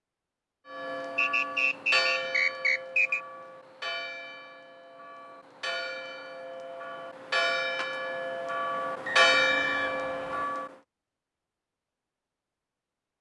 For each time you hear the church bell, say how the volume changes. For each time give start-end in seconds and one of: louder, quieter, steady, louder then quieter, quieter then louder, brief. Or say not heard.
0.7-10.7 quieter then louder.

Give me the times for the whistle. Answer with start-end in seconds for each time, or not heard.
1.1-3.2, 9.1-10.6.